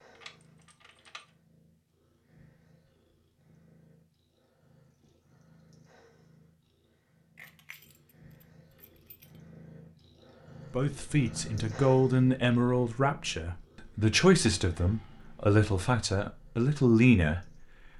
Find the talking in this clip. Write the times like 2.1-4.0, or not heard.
10.7-17.4.